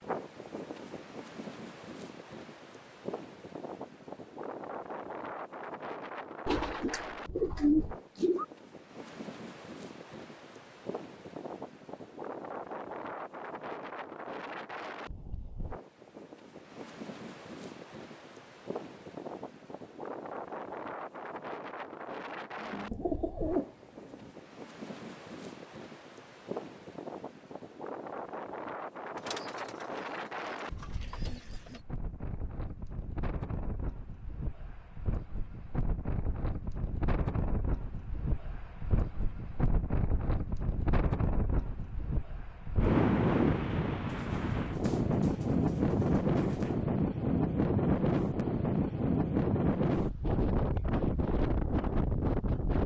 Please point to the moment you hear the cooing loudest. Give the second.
8 s.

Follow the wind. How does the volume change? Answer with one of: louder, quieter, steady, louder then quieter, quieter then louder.
louder.